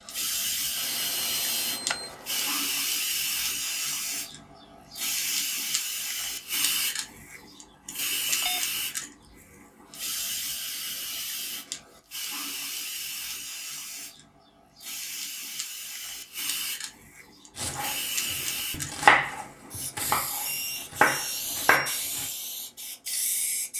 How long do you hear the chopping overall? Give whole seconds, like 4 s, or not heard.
5 s.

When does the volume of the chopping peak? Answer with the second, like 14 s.
19 s.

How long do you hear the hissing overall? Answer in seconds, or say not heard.
24 s.